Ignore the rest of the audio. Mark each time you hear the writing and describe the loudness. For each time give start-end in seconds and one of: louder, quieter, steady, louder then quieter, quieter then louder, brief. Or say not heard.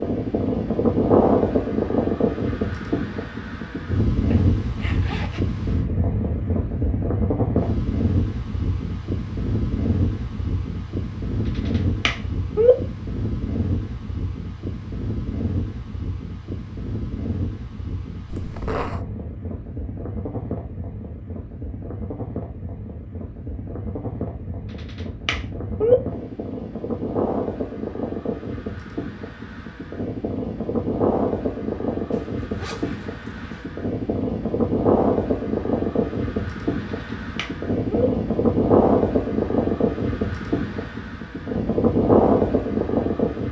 not heard.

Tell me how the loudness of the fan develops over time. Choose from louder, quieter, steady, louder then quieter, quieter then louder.
quieter then louder.